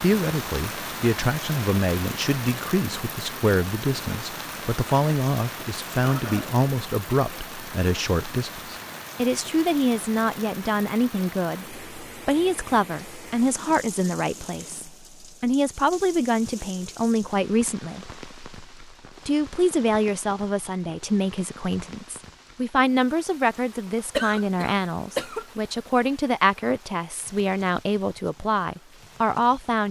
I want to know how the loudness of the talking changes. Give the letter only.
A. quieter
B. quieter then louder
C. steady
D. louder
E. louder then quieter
C.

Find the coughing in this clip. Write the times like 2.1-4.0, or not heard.
6.0-6.5, 24.1-25.4.